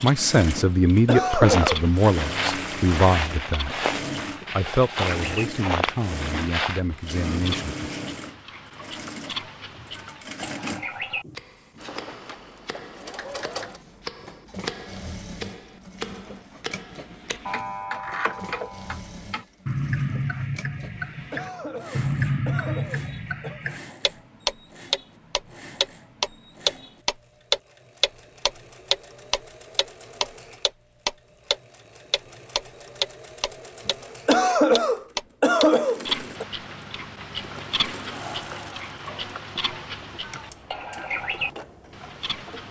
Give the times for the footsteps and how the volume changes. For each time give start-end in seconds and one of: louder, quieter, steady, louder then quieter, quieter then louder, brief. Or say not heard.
1.4-6.8 steady.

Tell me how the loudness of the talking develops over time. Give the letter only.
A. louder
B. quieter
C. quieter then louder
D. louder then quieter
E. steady
B.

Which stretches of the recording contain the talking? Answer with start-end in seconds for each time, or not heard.
0.0-3.8, 4.5-8.1.